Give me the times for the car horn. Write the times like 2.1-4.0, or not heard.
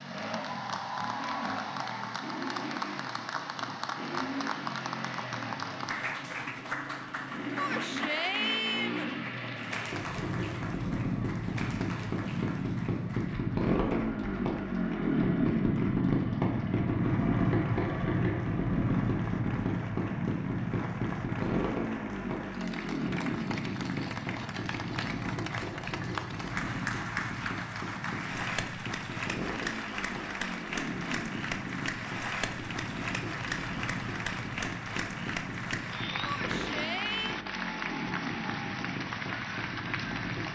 not heard.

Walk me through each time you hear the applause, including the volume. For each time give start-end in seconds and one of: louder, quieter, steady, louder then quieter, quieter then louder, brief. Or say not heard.
0.0-40.5 quieter then louder.